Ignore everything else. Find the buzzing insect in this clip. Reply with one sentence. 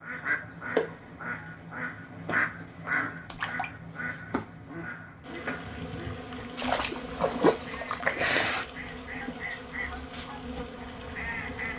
The buzzing insect can be heard from 5.2 to 11.7 s.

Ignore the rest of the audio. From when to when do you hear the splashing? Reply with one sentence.
The splashing can be heard from 3.2 to 3.7 s and from 6.5 to 8.7 s.